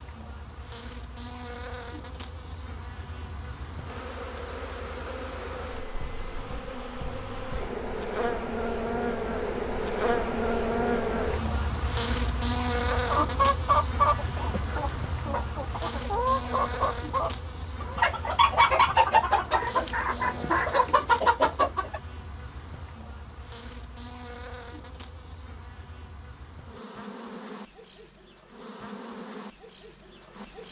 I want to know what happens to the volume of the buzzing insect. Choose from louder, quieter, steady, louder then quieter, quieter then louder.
louder then quieter.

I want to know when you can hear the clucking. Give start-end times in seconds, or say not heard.
12.9-22.0.